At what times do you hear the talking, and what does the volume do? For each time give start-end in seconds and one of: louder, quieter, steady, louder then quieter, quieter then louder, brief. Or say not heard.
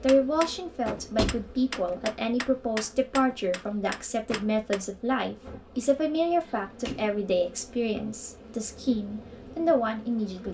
0.0-10.4 steady.